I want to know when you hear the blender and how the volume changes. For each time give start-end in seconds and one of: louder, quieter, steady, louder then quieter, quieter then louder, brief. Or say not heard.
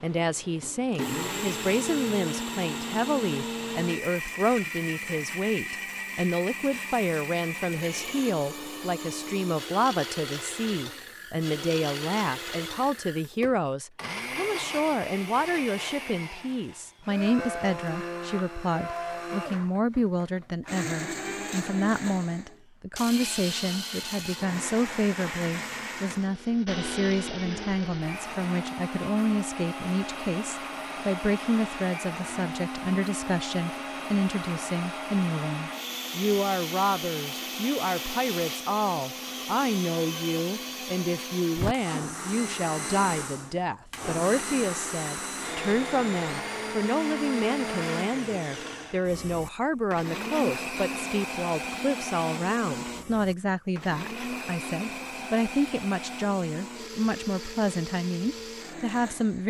0.0-59.4 steady.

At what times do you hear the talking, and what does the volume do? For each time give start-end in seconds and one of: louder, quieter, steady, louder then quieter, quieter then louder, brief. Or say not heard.
0.0-59.4 steady.